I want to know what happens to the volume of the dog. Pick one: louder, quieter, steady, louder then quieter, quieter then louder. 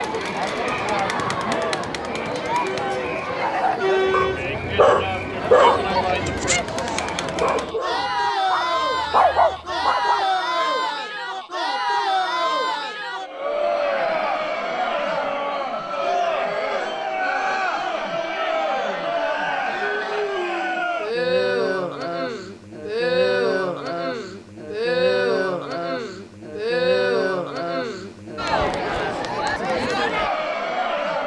quieter then louder.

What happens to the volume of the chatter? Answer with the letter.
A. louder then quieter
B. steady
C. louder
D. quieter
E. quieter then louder
B.